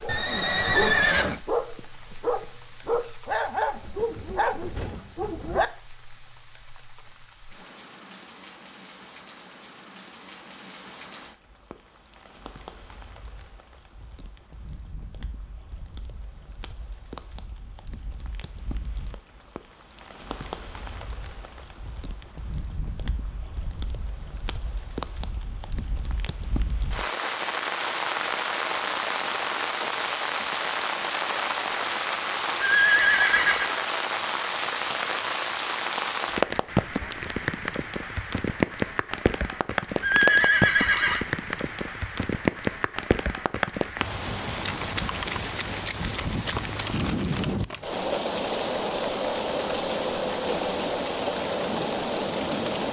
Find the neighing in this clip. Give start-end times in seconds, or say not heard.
0.1-1.4, 32.6-33.8, 40.0-41.2.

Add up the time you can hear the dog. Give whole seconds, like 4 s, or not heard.
6 s.